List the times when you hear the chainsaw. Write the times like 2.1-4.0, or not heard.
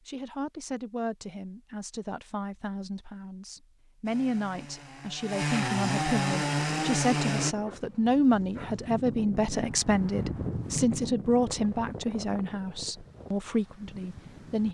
4.0-7.5.